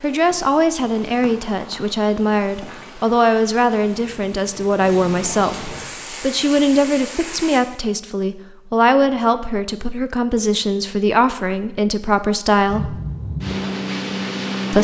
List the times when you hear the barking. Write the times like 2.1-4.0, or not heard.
not heard.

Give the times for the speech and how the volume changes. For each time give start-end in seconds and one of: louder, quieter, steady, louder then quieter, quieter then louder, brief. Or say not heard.
0.0-13.0 steady.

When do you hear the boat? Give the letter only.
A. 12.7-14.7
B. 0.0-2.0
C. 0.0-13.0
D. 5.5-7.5
A.